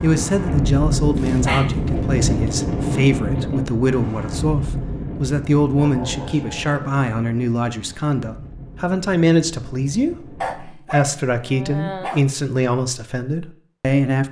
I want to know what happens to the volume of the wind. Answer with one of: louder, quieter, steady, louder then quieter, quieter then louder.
quieter.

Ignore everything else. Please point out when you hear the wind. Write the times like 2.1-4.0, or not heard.
0.0-10.8.